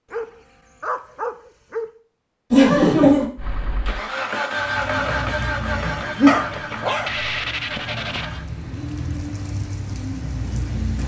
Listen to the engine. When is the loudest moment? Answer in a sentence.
The loudest moment of the engine is at 5 seconds.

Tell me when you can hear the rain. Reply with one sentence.
The rain can be heard from 4.5 to 11.0 s.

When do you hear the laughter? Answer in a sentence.
The laughter can be heard from 2.5 to 3.2 s and from 5.7 to 6.3 s.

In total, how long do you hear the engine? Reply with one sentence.
You can hear the engine for 5 seconds altogether.